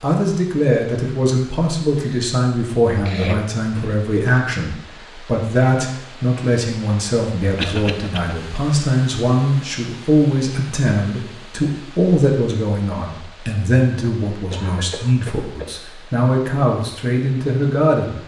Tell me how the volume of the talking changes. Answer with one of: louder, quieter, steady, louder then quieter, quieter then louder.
steady.